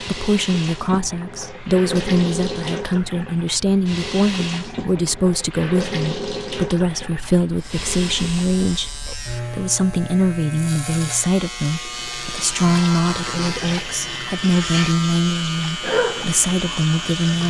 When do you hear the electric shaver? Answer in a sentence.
The electric shaver can be heard from 7.5 to 17.4 s.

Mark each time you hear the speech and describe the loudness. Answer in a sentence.
You can hear the speech from 0.0 to 17.4 s, at a steady volume.